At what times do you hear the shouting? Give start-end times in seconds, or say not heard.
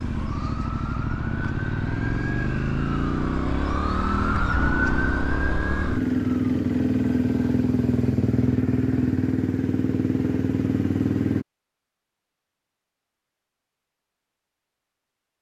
not heard.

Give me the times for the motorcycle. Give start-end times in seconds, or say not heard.
0.0-11.4.